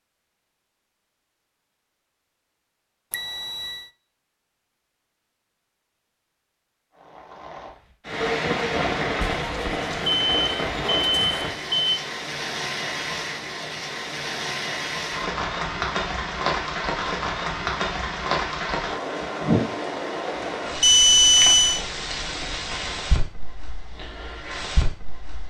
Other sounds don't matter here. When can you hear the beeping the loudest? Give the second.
21 s.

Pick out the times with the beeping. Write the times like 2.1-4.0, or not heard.
3.1-3.8, 9.2-12.0, 20.8-21.8.